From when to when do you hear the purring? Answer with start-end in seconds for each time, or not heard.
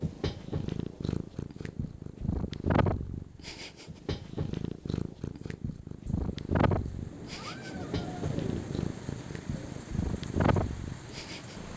0.0-11.7.